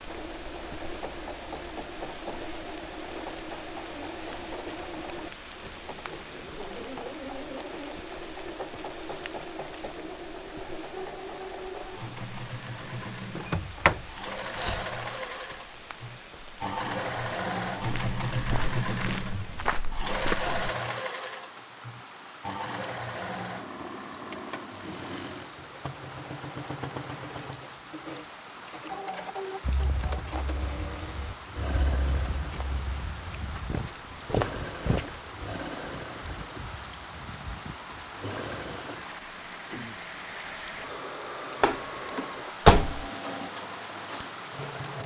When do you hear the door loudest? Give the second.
43 s.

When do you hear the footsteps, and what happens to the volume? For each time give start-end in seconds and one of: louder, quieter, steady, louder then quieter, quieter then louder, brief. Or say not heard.
17.8-20.6 brief
29.6-35.4 louder.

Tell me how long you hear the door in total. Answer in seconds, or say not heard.
3 s.